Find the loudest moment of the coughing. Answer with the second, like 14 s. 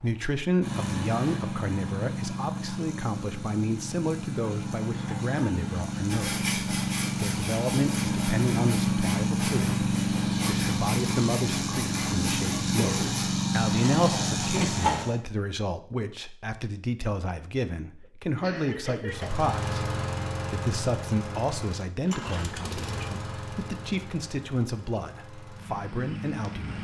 13 s.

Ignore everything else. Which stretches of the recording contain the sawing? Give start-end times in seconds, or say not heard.
6.0-15.2.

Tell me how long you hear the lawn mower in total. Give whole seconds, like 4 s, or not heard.
23 s.